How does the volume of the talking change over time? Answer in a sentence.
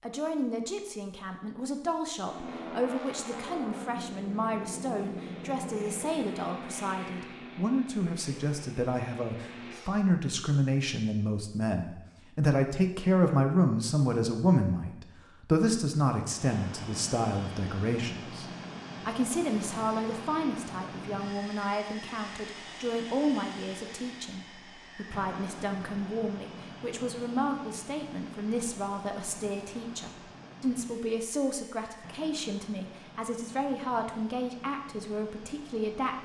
The loudness of the talking goes up, then down.